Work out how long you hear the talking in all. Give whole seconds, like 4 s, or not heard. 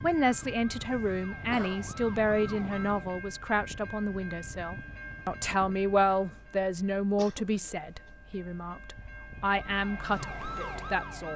11 s.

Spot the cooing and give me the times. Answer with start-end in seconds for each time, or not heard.
not heard.